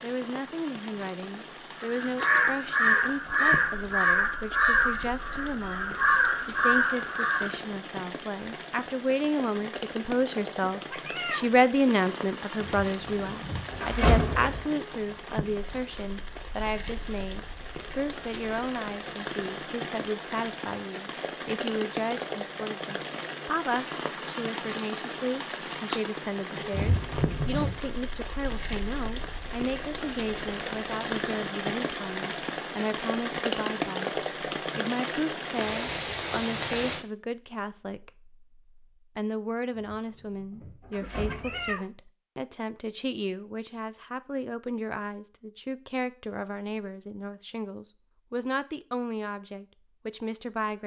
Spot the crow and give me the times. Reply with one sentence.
The crow can be heard from 1.8 to 7.6 s.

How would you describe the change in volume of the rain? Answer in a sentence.
The loudness of the rain goes up.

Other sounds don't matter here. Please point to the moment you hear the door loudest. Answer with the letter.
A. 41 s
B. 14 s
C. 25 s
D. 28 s
B.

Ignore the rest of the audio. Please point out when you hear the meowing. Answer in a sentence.
The meowing can be heard from 10.6 to 11.5 s and from 41.0 to 41.9 s.